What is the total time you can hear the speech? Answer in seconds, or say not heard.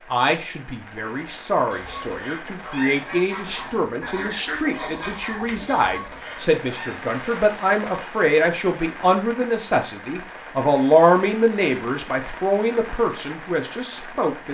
14 s.